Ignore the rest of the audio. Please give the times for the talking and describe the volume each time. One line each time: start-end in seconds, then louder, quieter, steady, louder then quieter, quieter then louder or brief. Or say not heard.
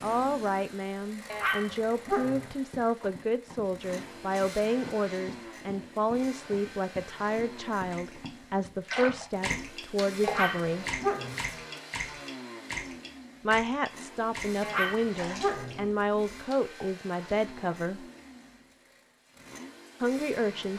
0.0-10.8 steady
13.4-18.1 steady
20.0-20.7 brief.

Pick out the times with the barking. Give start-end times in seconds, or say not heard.
1.3-2.5, 10.2-11.5, 14.6-15.8.